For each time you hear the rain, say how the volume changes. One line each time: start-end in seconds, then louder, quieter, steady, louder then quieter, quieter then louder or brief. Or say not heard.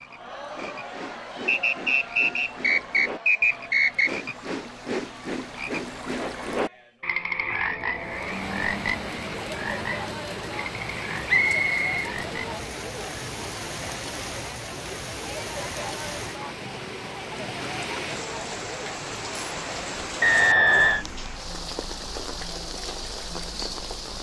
7.9-24.1 steady.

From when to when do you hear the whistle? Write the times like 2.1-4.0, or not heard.
1.4-4.2, 11.2-12.1, 20.2-21.1.